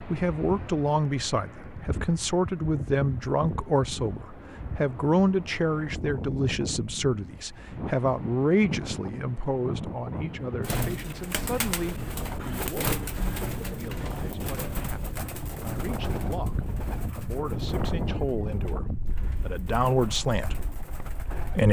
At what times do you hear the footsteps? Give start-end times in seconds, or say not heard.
not heard.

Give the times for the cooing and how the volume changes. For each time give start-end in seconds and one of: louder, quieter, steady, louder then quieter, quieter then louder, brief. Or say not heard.
10.6-21.6 quieter.